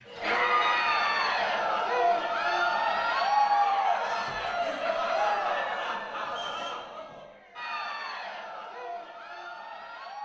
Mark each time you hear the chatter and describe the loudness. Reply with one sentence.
You can hear the chatter from 0.1 to 10.2 s, getting quieter.